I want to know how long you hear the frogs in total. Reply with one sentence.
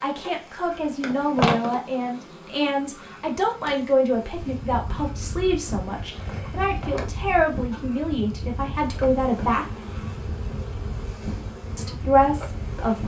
The frogs can't be heard in this clip.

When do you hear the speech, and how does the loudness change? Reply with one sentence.
The speech can be heard from 0.0 to 9.7 s, at a steady volume; and briefly from 11.8 to 13.0 s.